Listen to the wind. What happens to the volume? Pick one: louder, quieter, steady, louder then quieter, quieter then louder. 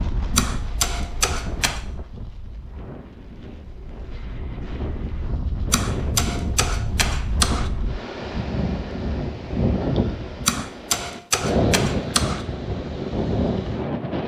louder.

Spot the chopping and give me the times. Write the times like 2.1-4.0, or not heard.
0.3-1.9, 5.7-7.7, 10.4-12.4.